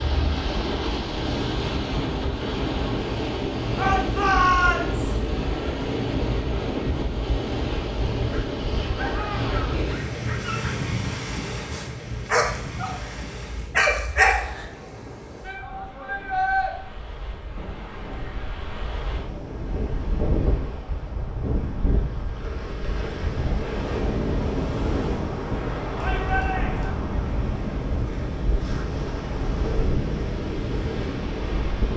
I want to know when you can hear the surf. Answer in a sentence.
You can hear the surf from 0.0 to 31.9 s.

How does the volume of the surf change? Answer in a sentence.
The loudness of the surf goes down, then up.